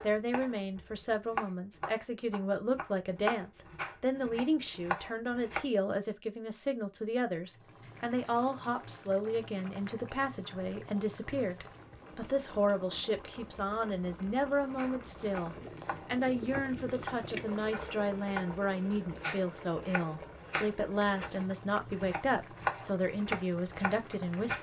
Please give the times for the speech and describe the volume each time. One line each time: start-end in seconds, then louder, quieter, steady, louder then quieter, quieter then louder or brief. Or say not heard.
0.0-24.5 steady.